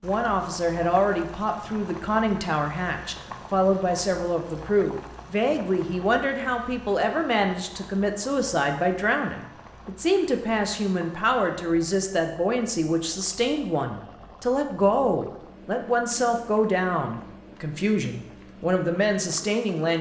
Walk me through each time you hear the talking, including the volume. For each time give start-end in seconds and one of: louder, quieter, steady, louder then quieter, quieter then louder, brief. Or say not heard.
0.0-19.9 steady.